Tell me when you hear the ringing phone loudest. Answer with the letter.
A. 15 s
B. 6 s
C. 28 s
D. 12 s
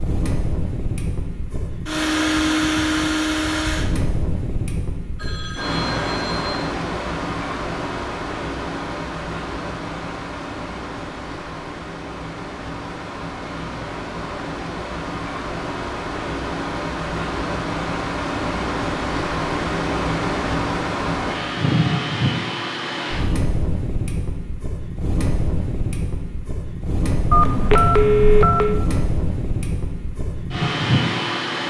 C.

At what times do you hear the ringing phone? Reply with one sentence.
You can hear the ringing phone from 5.2 to 6.7 s and from 27.3 to 28.8 s.